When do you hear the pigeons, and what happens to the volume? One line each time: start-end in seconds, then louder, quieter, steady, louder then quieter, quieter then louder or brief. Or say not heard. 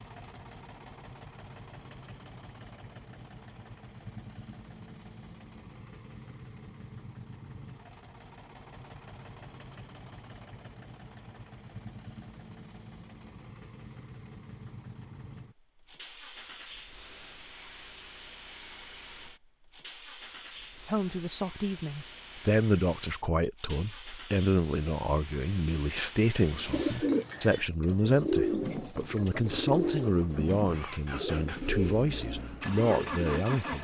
26.6-33.7 quieter.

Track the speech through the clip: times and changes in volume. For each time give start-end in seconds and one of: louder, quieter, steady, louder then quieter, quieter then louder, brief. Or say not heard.
20.9-33.7 steady.